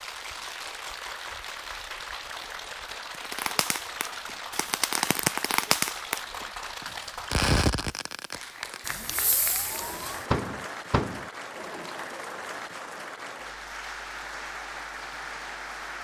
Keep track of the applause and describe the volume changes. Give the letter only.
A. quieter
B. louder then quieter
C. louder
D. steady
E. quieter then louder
D.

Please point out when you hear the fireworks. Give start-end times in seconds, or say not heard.
3.1-11.3.